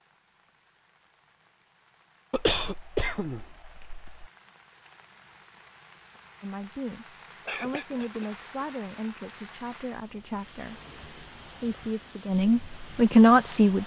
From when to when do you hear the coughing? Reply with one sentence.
You can hear the coughing from 2.3 to 4.3 s and from 7.5 to 8.3 s.